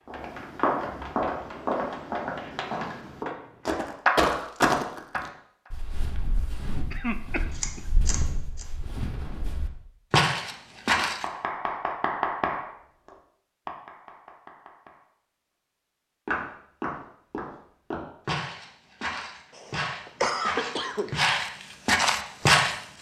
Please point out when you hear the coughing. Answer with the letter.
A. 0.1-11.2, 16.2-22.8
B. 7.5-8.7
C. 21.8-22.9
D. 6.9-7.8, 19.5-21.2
D.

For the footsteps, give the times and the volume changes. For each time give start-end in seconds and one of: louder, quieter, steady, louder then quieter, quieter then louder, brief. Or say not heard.
0.1-11.2 quieter then louder
16.2-22.8 louder.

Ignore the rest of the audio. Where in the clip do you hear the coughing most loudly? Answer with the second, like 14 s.
20 s.